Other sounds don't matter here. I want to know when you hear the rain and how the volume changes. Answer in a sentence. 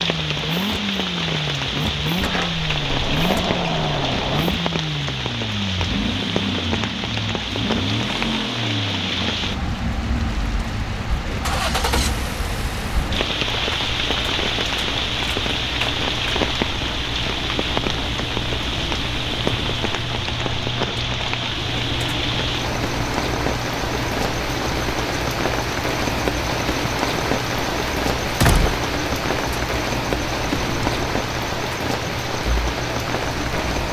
You can hear the rain from 0.0 to 33.8 s, at a steady volume.